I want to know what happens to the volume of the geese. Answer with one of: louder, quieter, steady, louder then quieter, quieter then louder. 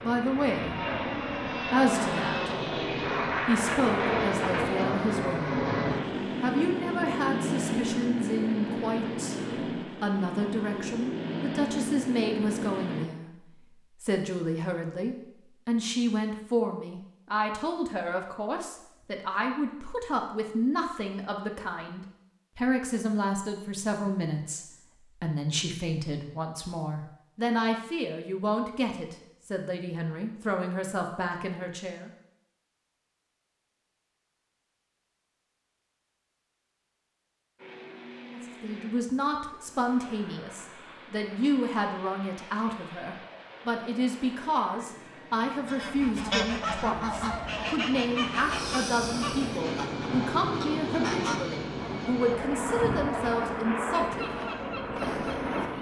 quieter.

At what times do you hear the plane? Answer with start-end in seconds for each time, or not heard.
0.0-13.1, 37.5-55.7.